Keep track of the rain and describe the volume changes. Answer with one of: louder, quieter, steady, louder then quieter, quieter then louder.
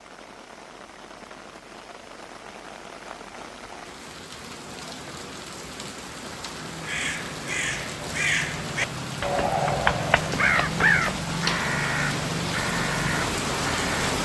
louder.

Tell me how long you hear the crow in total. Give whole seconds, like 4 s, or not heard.
7 s.